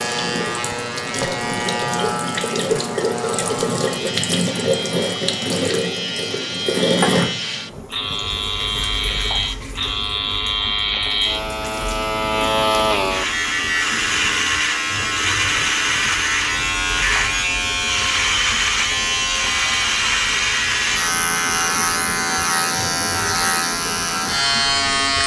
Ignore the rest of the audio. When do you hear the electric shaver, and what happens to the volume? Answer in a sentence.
You can hear the electric shaver from 0.0 to 25.2 s, getting louder.